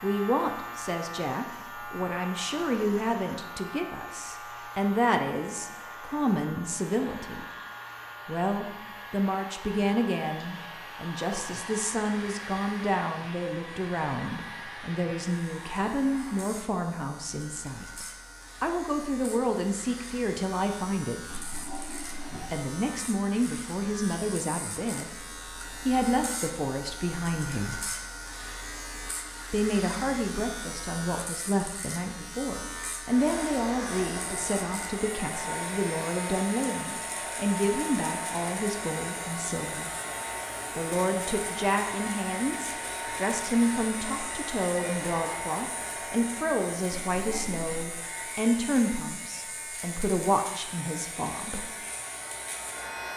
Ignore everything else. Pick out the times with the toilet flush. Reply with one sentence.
You can hear the toilet flush from 21.2 to 22.6 s and from 46.9 to 47.9 s.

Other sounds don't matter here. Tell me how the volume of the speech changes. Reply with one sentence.
The loudness of the speech stays about the same.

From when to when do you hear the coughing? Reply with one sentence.
You can't hear the coughing here.